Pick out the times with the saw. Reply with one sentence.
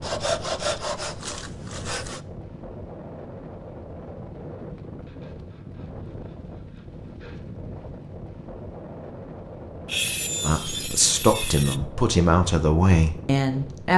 The saw can be heard from 0.0 to 2.2 s, from 5.0 to 7.5 s and from 9.8 to 11.8 s.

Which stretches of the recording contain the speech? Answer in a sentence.
You can hear the speech from 10.4 to 13.9 s.